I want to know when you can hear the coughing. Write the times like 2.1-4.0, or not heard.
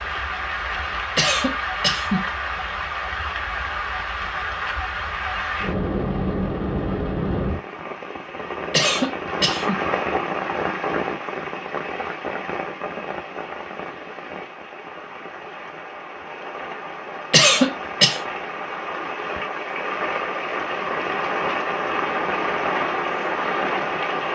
1.1-2.3, 8.7-9.8, 17.3-18.2.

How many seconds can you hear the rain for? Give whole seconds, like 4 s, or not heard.
24 s.